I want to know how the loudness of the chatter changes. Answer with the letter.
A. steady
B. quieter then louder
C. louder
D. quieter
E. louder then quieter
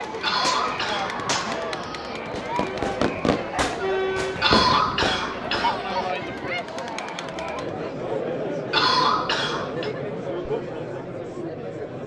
A.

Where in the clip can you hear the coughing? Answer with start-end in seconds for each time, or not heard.
0.2-2.2, 4.4-6.1, 8.7-9.9.